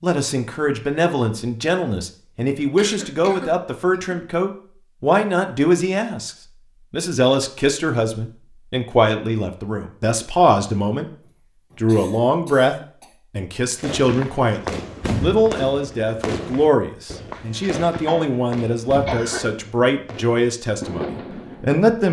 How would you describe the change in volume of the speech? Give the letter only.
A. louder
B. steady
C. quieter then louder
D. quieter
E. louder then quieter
B.